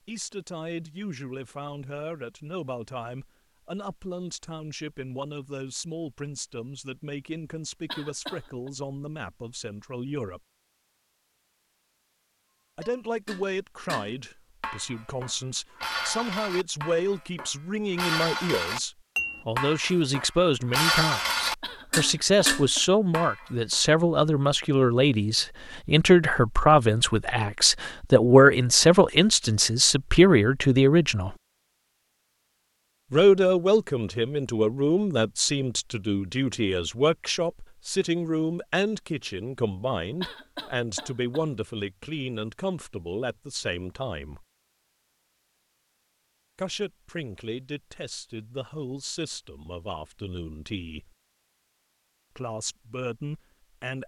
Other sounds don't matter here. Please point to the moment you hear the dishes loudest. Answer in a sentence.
The loudest moment of the dishes is at 21 seconds.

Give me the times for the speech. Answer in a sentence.
You can hear the speech from 0.1 to 10.4 s, from 12.8 to 31.4 s, from 33.1 to 44.5 s, from 46.5 to 51.1 s and from 52.4 to 54.0 s.